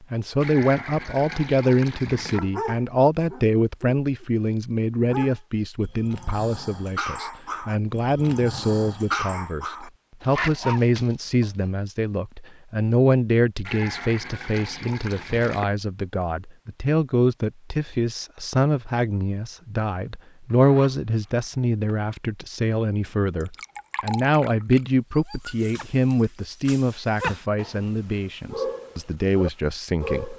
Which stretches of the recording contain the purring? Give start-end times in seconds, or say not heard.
not heard.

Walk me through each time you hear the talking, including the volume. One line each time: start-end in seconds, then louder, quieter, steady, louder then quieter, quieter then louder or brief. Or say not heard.
0.0-30.3 steady.